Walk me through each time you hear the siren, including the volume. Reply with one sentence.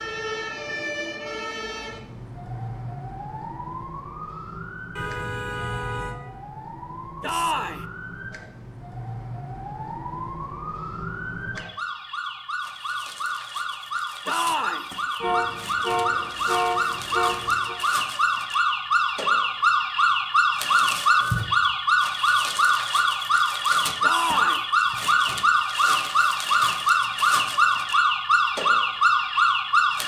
You can hear the siren from 0.0 to 30.0 s, getting louder.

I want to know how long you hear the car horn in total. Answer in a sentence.
The car horn can be heard for 4 seconds in total.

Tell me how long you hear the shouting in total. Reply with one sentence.
You can hear the shouting for 2 seconds altogether.